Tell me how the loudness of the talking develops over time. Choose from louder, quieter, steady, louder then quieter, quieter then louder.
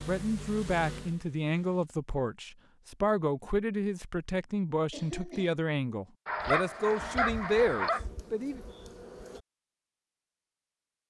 steady.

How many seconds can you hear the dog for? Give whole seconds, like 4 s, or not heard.
2 s.